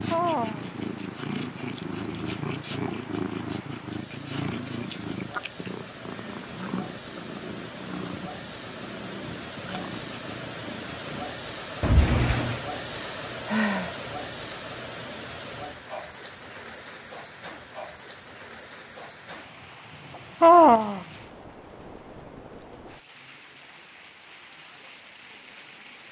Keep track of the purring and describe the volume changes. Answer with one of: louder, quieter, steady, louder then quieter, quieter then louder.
quieter.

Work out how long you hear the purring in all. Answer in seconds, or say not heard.
11 s.